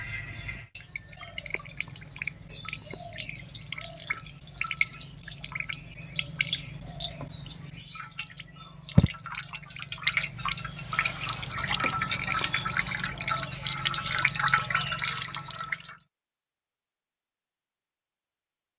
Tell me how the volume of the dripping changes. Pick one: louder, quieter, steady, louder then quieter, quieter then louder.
louder.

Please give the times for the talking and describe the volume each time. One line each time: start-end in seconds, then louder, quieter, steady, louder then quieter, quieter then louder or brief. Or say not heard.
not heard.